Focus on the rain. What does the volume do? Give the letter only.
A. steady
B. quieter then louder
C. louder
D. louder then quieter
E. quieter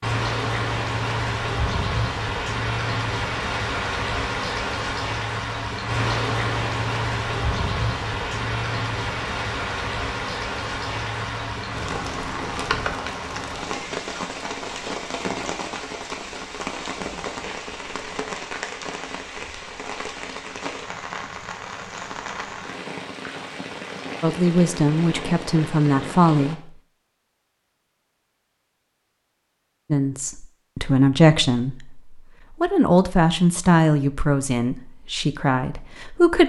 E.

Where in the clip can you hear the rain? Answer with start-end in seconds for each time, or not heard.
0.0-26.6.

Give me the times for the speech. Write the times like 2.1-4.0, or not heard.
24.2-26.6, 29.9-36.4.